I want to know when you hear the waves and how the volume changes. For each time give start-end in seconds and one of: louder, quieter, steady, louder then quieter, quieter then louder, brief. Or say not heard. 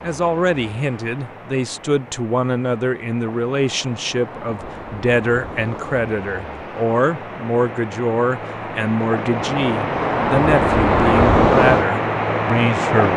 0.0-13.1 louder.